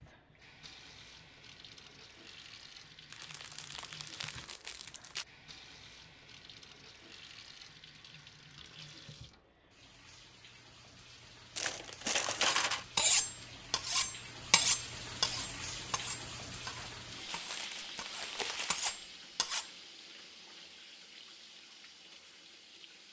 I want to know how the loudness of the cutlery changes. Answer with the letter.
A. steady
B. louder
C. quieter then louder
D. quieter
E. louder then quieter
C.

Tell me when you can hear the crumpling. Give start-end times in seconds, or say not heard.
3.1-5.2, 11.6-12.8, 16.9-19.0.